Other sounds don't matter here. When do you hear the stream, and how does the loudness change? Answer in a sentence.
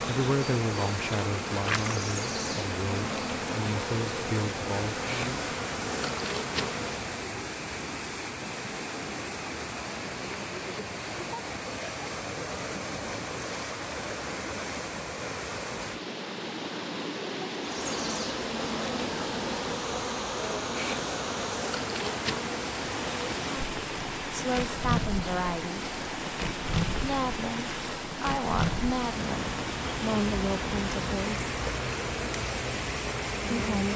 You can hear the stream from 0.0 to 33.9 s, at a steady volume.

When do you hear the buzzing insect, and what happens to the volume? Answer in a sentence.
You can hear the buzzing insect from 0.0 to 7.2 s, at a steady volume; and from 17.6 to 33.9 s, at a steady volume.